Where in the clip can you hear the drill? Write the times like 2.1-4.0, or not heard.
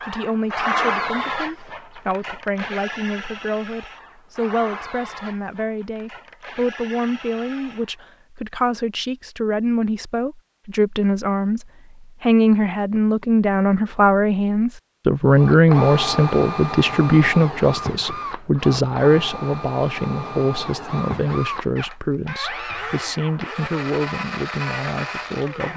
0.0-8.0, 15.3-25.7.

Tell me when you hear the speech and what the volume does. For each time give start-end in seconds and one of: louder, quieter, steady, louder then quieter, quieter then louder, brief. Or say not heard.
0.0-25.7 louder then quieter.